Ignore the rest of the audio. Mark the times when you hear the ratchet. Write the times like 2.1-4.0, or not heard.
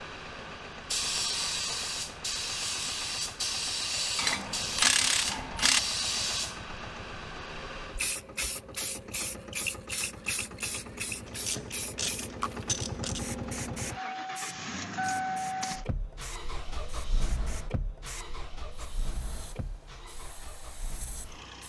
4.2-5.8, 11.2-13.2.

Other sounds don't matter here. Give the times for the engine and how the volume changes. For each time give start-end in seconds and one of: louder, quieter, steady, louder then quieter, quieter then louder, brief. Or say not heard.
0.0-21.6 louder then quieter.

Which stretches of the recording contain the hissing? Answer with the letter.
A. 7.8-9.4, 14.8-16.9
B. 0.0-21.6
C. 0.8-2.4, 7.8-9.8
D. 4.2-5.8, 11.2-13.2
B.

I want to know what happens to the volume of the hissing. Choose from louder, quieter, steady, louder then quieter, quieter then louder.
quieter.